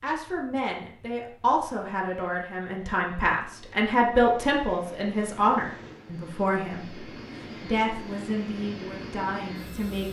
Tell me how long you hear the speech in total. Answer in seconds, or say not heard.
10 s.